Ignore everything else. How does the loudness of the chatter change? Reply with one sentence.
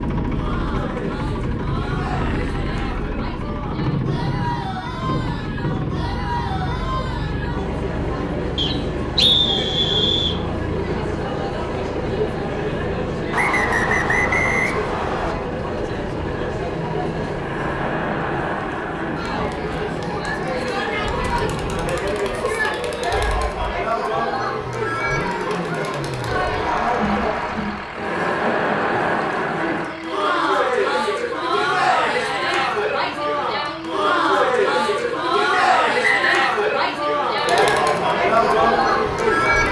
The loudness of the chatter goes up.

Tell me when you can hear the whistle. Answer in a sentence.
You can hear the whistle from 8.6 to 10.4 s, from 13.3 to 15.3 s and from 35.5 to 36.5 s.